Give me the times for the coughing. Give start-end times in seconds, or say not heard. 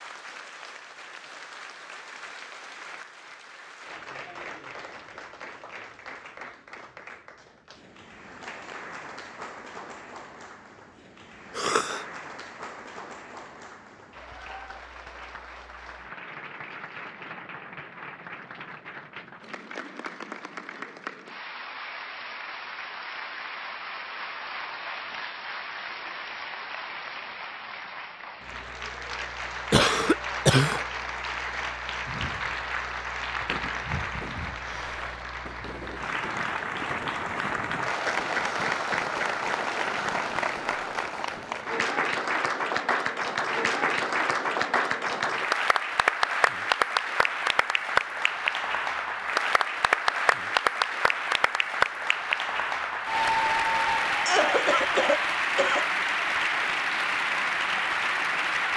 11.6-12.1, 29.7-30.9, 54.2-55.9.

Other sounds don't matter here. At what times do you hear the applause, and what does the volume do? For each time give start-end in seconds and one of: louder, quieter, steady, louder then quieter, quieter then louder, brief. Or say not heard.
0.0-58.7 louder.